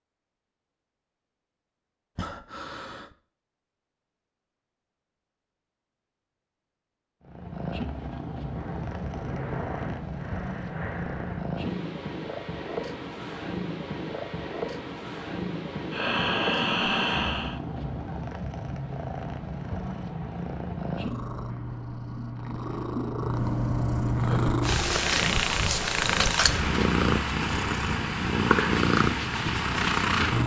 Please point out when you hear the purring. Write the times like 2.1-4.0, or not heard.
7.2-30.4.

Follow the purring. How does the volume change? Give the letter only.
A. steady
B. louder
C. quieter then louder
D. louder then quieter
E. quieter
B.